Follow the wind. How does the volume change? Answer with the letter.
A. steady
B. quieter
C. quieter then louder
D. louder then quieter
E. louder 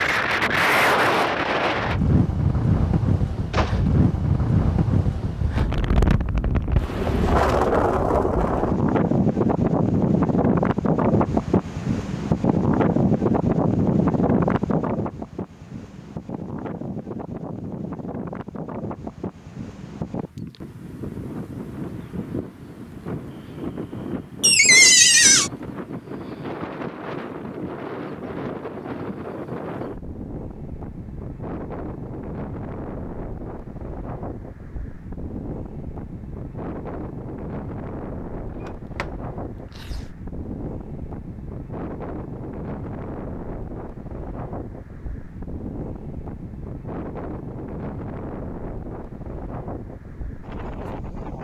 B.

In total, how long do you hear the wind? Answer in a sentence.
The wind can be heard for 51 seconds in total.